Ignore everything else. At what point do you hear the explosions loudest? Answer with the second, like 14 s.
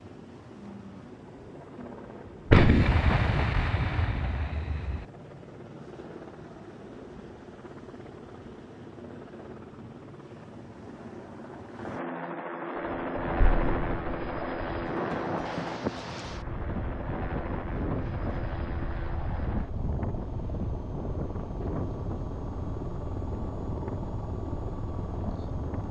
3 s.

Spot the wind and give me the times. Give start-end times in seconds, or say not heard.
12.8-25.8.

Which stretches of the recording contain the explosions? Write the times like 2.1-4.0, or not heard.
2.5-5.0, 13.4-14.4.